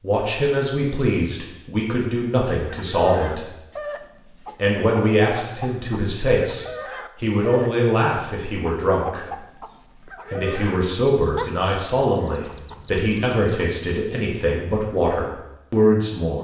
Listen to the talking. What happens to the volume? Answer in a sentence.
The volume of the talking stays about the same.